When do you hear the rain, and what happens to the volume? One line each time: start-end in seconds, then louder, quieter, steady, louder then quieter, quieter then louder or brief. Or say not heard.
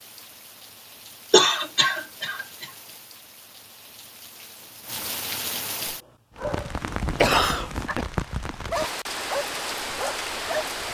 0.0-10.8 louder.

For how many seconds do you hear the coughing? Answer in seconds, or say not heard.
2 s.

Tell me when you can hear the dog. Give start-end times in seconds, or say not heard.
6.3-10.7.